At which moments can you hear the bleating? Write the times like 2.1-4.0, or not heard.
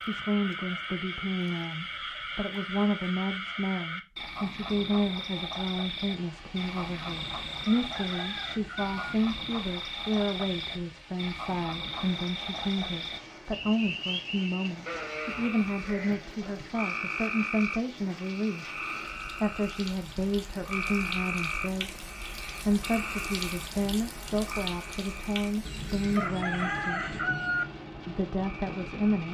14.8-16.6.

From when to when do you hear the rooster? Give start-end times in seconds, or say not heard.
7.1-8.9, 25.6-27.6.